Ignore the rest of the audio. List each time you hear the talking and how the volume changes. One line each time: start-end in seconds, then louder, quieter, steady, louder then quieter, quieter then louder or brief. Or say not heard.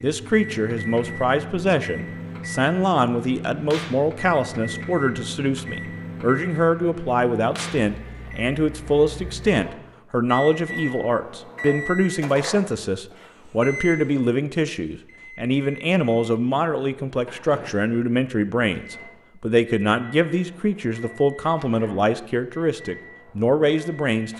0.0-24.3 steady.